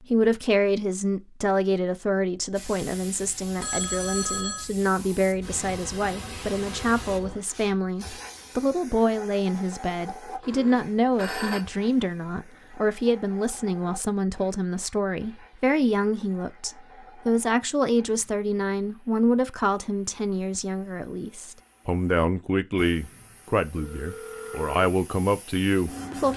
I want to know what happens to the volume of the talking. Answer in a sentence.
The volume of the talking stays about the same.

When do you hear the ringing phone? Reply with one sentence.
You can hear the ringing phone from 3.6 to 4.7 s, from 10.4 to 11.7 s and from 23.8 to 24.9 s.